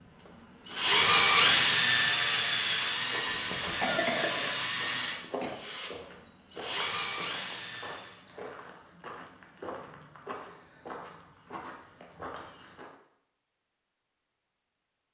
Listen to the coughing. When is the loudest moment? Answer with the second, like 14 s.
4 s.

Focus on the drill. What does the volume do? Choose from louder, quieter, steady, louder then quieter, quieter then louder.
quieter.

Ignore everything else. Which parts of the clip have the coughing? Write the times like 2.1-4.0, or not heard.
3.2-5.5.